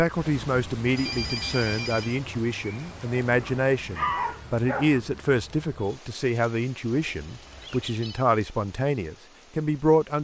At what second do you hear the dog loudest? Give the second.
4 s.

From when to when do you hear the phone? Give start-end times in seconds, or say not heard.
0.9-2.1, 6.9-8.2.